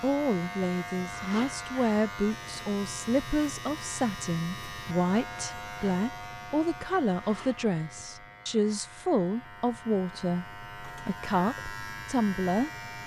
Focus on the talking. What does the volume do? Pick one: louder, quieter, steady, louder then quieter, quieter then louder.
steady.